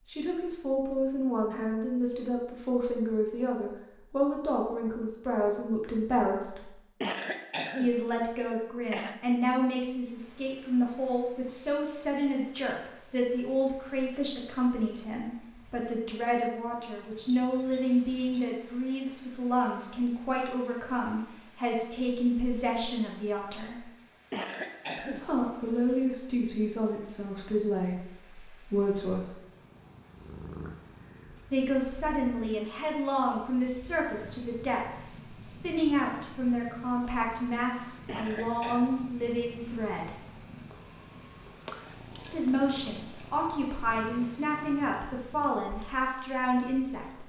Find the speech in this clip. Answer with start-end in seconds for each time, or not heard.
0.1-6.7, 7.8-23.9, 24.9-29.4, 31.5-40.1, 42.2-47.2.